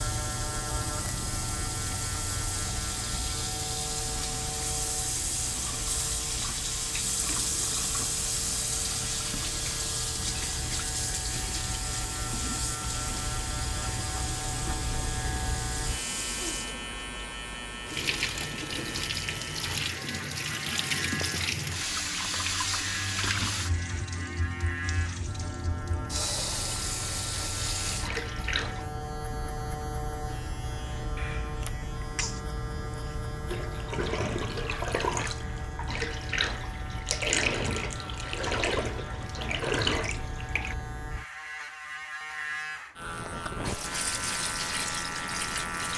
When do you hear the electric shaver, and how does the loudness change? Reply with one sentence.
You can hear the electric shaver from 0.0 to 45.9 s, at a steady volume.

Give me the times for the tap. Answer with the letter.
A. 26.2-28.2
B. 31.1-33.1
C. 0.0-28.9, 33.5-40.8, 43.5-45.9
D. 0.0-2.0
C.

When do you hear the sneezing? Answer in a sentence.
The sneezing can be heard from 31.1 to 33.1 s.